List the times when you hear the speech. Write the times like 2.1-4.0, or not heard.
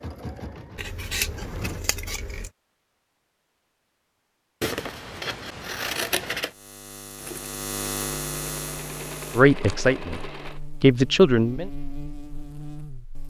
9.3-11.7.